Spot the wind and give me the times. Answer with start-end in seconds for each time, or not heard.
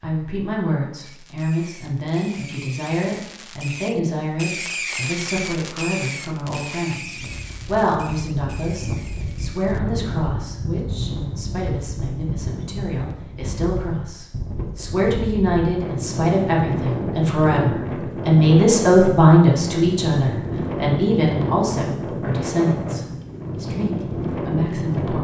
7.0-25.1.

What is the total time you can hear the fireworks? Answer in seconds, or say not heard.
9 s.